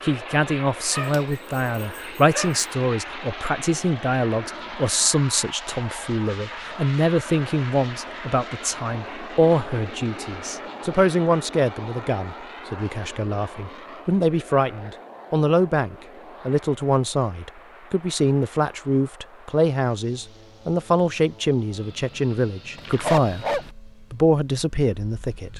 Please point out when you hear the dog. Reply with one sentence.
The dog can be heard from 0.9 to 2.6 s and from 22.8 to 23.7 s.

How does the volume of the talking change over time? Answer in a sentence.
The loudness of the talking stays about the same.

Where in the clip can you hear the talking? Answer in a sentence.
You can hear the talking from 0.0 to 25.5 s.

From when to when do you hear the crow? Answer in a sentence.
The crow can't be heard in this clip.